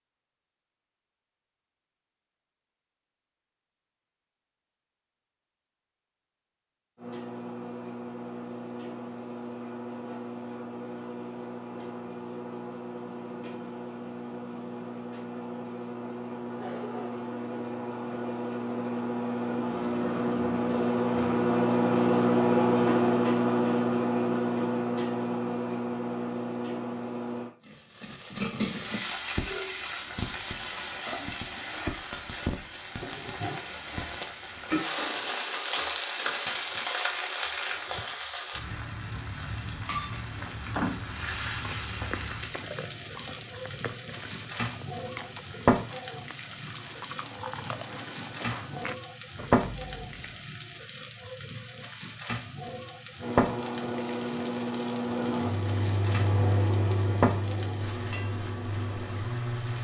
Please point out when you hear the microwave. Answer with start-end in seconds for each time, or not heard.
7.0-27.5, 53.1-59.7.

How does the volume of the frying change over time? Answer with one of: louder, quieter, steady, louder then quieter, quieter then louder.
steady.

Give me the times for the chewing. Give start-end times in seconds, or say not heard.
40.2-50.5.